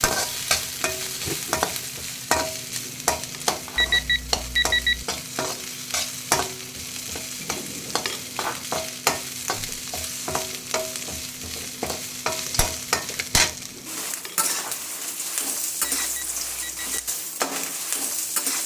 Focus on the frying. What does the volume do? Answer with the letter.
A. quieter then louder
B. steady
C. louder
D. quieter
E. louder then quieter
B.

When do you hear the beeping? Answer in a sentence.
The beeping can be heard from 3.8 to 5.0 s and from 15.8 to 17.1 s.